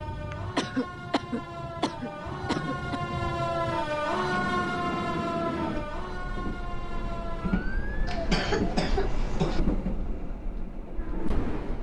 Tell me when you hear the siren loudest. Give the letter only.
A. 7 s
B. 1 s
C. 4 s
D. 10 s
C.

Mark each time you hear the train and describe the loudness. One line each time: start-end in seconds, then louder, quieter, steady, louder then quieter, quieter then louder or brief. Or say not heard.
0.0-11.7 louder.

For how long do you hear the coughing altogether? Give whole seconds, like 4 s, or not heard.
4 s.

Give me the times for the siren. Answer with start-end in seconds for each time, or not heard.
0.0-8.1.